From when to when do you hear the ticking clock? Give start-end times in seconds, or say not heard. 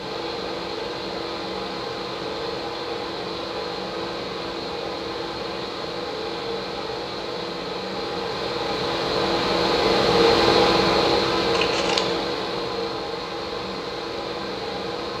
not heard.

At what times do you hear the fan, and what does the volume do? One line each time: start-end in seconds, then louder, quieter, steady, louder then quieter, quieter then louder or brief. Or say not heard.
0.0-15.1 louder then quieter.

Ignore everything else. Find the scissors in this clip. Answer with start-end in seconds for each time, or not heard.
11.4-12.2.